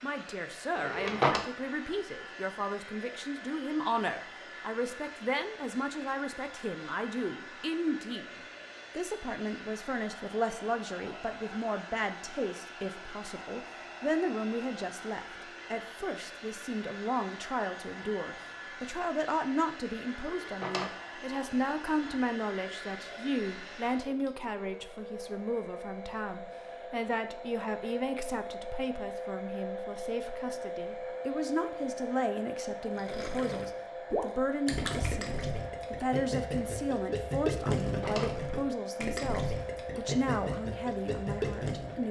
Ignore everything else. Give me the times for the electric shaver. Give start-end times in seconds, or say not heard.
not heard.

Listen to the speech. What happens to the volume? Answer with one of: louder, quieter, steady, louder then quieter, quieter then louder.
steady.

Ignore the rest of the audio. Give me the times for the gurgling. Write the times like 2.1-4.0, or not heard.
33.0-42.0.